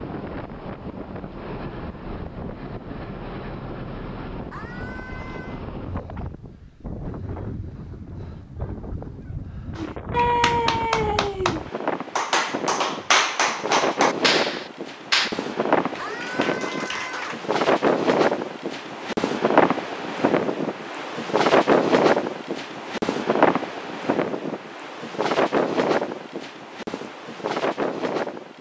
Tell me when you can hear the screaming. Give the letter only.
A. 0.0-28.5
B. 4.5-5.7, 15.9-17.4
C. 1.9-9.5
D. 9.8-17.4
B.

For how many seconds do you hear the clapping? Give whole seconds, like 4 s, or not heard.
8 s.